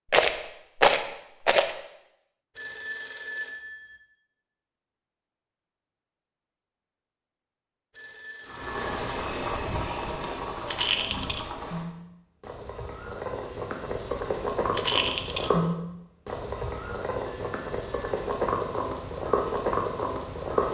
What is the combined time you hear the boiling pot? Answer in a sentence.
The boiling pot can be heard for 12 seconds in total.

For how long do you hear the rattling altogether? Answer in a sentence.
The rattling can be heard for 3 seconds in total.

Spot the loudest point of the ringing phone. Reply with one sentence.
The loudest moment of the ringing phone is at 3 seconds.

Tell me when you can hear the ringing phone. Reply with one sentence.
You can hear the ringing phone from 2.5 to 4.0 s, from 7.9 to 8.8 s and from 17.2 to 18.1 s.